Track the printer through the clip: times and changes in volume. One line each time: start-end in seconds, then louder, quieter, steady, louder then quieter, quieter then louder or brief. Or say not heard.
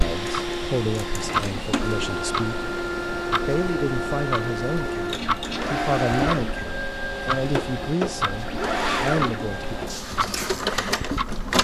0.0-11.5 steady.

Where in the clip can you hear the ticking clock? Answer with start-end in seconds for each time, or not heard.
0.0-11.5.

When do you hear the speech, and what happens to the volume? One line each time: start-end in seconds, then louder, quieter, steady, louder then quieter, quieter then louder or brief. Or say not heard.
0.0-2.7 brief
3.5-9.8 steady.